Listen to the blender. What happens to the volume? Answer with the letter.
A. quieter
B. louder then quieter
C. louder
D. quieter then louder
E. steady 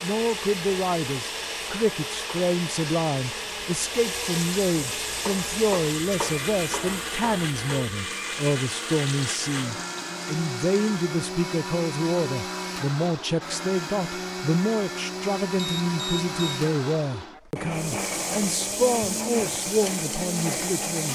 E.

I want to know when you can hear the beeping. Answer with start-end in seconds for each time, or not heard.
15.6-16.6.